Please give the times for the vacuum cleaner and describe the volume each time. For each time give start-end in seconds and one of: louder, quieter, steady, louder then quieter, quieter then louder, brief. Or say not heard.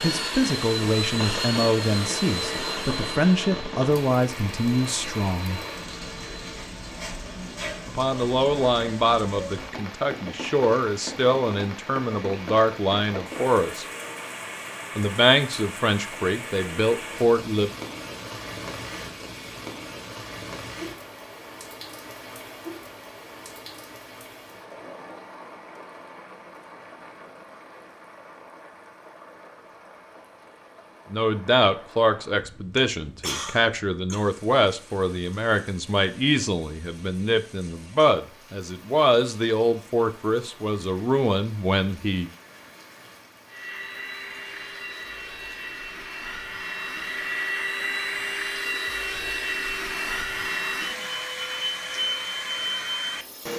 0.0-6.5 quieter
43.5-53.5 louder.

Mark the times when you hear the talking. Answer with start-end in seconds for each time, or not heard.
0.0-5.6, 7.8-13.8, 14.9-17.7, 31.1-42.3.